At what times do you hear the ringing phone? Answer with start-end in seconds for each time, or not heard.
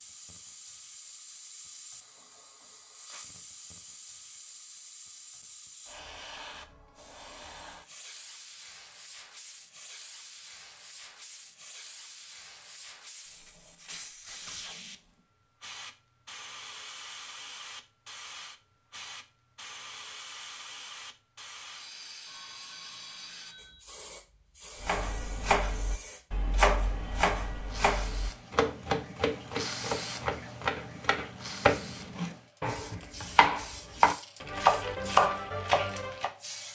22.2-23.8.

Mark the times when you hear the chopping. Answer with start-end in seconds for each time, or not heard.
24.8-36.3.